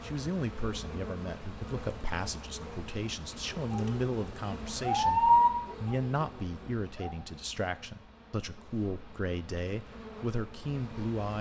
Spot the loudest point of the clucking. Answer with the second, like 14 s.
5 s.